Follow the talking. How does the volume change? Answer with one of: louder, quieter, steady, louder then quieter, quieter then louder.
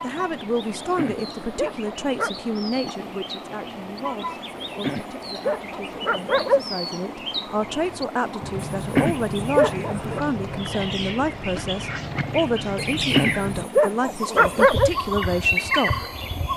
quieter then louder.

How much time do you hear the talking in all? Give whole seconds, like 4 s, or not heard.
16 s.